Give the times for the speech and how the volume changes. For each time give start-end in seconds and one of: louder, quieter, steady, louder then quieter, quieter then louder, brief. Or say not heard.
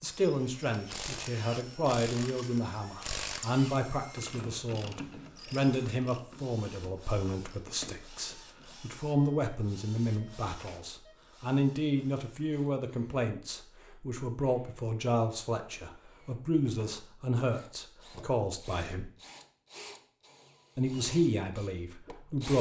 0.0-19.1 steady
20.8-22.5 brief.